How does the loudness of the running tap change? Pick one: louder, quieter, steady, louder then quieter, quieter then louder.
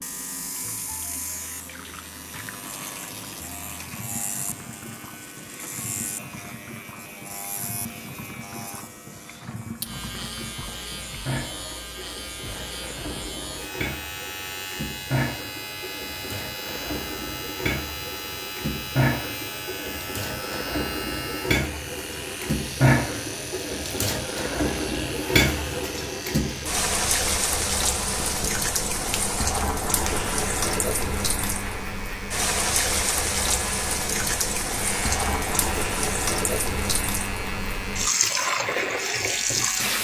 louder.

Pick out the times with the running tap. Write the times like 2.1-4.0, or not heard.
0.0-40.0.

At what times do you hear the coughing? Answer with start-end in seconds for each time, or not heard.
not heard.